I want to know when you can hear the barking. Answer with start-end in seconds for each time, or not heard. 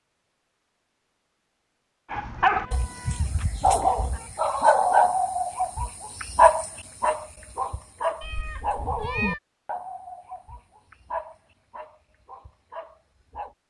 2.1-13.6.